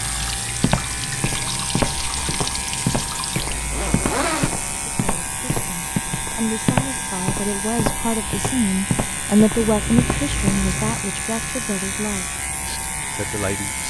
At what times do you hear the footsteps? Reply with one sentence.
The footsteps can be heard from 0.6 to 10.6 s.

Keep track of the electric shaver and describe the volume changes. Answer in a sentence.
The loudness of the electric shaver stays about the same.